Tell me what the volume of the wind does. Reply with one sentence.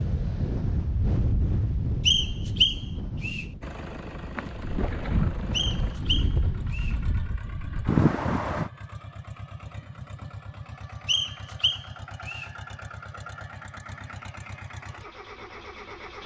The loudness of the wind goes down, then up.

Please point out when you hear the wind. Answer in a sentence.
You can hear the wind from 0.0 to 8.7 s.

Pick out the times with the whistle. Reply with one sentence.
You can hear the whistle from 2.0 to 3.5 s, from 5.5 to 7.0 s and from 11.1 to 12.5 s.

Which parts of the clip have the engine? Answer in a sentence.
The engine can be heard from 3.6 to 16.2 s.